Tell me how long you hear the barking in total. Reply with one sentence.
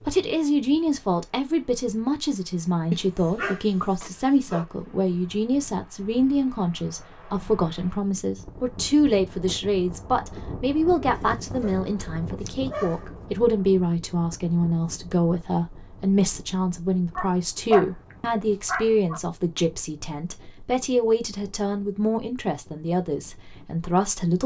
You can hear the barking for 6 seconds altogether.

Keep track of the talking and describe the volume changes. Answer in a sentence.
The loudness of the talking stays about the same.